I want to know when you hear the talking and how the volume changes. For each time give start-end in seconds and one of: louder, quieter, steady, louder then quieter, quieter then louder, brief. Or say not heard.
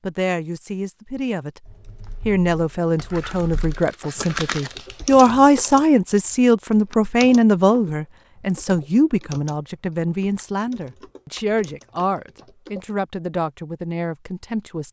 0.0-1.6 brief
2.2-14.8 louder then quieter.